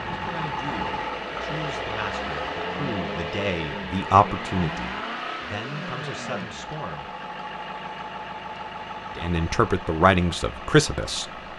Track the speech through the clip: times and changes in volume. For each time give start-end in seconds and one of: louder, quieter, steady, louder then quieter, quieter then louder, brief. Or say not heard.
0.1-7.1 louder then quieter
9.2-11.4 brief.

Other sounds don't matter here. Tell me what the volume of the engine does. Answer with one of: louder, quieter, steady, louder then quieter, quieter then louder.
quieter.